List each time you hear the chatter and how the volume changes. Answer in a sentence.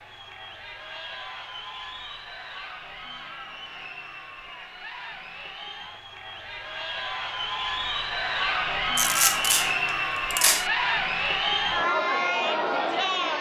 You can hear the chatter from 0.0 to 13.3 s, getting louder.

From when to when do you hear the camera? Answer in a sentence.
You can hear the camera from 8.9 to 10.7 s.